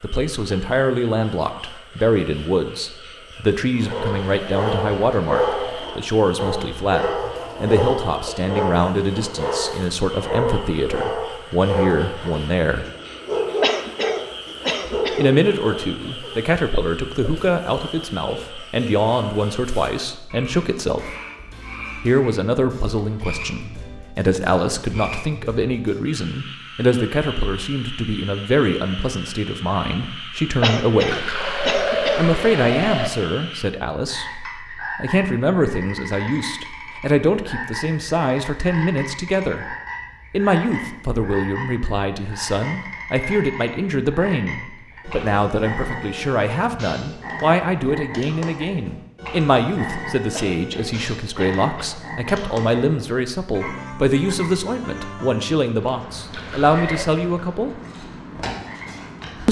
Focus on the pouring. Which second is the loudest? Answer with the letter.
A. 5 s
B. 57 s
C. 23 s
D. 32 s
D.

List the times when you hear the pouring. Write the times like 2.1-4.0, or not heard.
3.9-5.8, 31.1-33.1, 56.3-57.0.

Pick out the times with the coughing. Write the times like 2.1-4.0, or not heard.
13.6-15.2, 30.6-32.2, 50.4-52.0.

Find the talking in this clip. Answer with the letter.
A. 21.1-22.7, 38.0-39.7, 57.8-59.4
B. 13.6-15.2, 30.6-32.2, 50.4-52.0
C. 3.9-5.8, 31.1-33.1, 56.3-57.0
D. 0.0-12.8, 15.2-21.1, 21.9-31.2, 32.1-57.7
D.